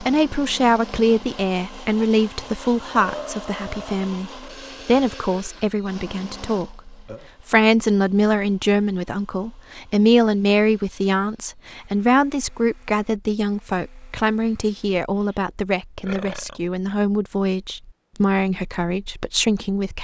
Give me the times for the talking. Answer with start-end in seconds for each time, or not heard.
0.0-20.0.